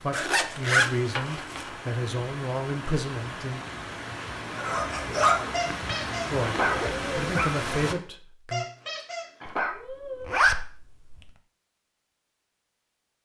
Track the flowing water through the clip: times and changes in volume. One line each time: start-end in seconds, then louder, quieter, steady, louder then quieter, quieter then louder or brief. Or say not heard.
0.0-8.0 louder.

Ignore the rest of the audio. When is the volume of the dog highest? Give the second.
5 s.